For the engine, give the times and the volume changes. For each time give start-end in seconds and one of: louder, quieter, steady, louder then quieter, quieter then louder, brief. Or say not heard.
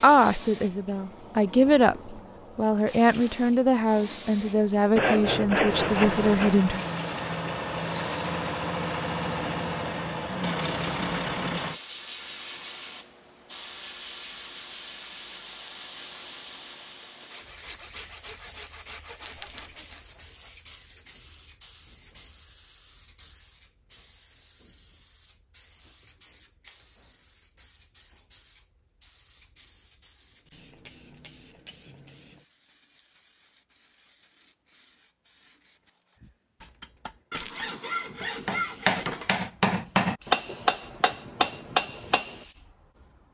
5.7-11.8 steady.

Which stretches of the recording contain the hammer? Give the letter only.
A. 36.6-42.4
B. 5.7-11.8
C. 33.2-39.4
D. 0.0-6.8
A.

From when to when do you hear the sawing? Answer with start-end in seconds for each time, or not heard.
5.0-6.5, 17.3-20.1, 37.3-39.3.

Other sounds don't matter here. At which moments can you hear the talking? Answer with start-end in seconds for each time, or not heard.
0.0-6.8.